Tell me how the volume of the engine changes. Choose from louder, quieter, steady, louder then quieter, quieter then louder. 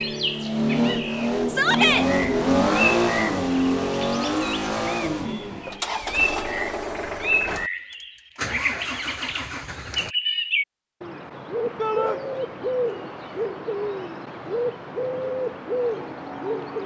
quieter.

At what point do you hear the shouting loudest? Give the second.
2 s.